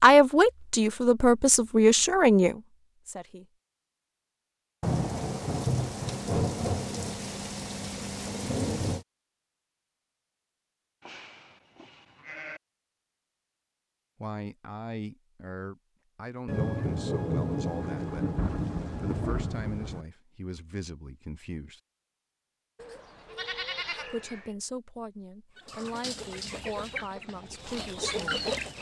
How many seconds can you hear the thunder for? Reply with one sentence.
You can hear the thunder for 8 seconds altogether.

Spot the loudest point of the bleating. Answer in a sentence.
The loudest moment of the bleating is at 24 seconds.